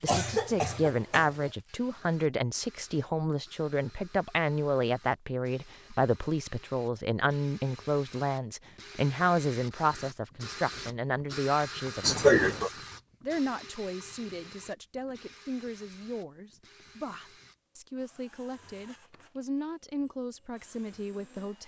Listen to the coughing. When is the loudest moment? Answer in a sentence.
The loudest moment of the coughing is at 12 seconds.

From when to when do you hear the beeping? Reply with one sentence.
The beeping can't be heard in this clip.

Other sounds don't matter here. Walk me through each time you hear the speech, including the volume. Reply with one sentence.
You can hear the speech from 0.0 to 21.6 s, getting quieter.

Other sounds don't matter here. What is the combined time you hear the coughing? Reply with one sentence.
The coughing can be heard for 2 seconds in total.